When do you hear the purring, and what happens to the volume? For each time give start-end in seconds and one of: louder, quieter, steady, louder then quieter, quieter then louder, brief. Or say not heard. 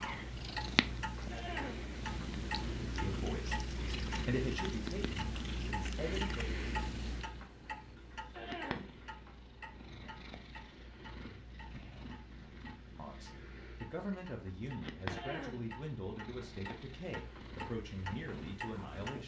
0.0-19.2 quieter.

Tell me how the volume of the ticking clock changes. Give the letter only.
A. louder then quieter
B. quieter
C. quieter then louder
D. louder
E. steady
C.